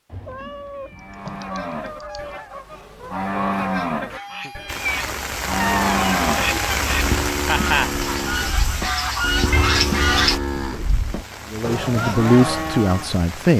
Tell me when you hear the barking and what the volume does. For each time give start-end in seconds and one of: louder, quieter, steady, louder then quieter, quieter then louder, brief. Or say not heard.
not heard.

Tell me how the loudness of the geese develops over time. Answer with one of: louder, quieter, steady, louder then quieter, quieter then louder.
louder.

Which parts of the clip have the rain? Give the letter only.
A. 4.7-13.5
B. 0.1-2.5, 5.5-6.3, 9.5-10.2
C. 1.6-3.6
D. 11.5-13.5
A.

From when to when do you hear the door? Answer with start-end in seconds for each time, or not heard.
not heard.